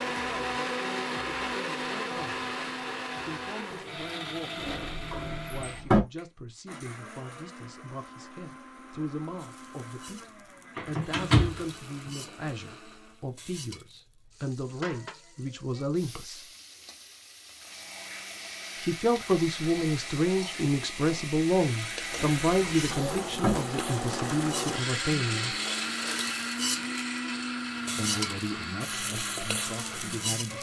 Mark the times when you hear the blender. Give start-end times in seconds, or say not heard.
0.0-13.3, 17.6-30.5.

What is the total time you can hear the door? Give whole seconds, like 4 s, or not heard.
4 s.